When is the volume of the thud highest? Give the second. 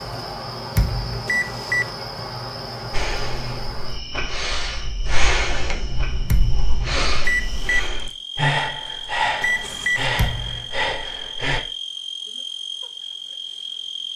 1 s.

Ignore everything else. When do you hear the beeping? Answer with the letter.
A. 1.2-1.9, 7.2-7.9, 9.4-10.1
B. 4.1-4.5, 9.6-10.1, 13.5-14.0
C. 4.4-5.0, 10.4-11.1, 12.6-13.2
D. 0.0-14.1
A.